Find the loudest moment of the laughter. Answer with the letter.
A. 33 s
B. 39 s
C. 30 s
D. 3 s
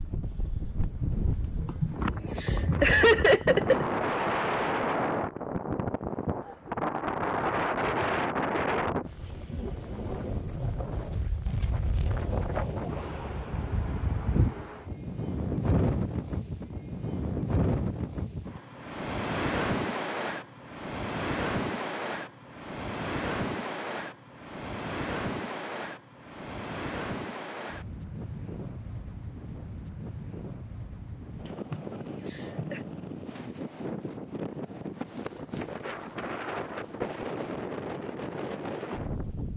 D.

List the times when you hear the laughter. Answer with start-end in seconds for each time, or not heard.
1.6-3.9, 31.5-32.9.